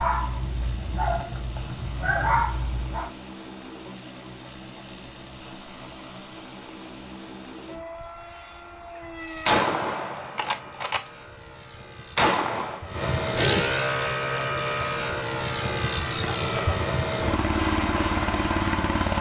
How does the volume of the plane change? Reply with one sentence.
The volume of the plane goes up.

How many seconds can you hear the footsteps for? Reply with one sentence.
You can't hear the footsteps here.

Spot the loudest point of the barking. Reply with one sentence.
The loudest moment of the barking is at 2 seconds.